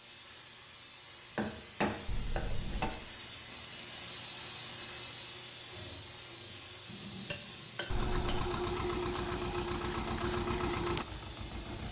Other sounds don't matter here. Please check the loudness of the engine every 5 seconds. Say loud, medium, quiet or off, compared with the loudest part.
off, loud, loud.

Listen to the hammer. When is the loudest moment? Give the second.
2 s.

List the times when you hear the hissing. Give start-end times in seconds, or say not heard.
0.0-11.8.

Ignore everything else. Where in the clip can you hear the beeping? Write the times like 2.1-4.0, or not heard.
2.0-3.0, 7.9-8.5.